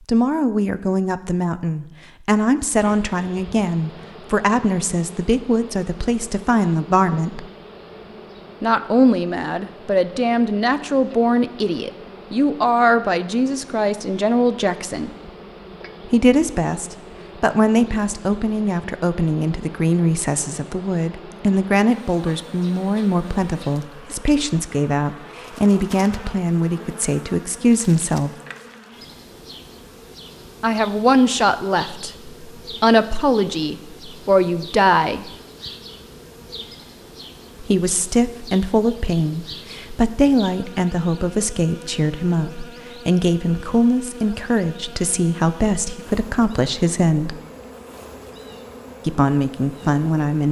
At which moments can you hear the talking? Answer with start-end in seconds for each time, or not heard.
0.1-7.5, 8.6-15.1, 16.1-28.3, 30.6-35.3, 37.6-47.4, 49.0-50.4.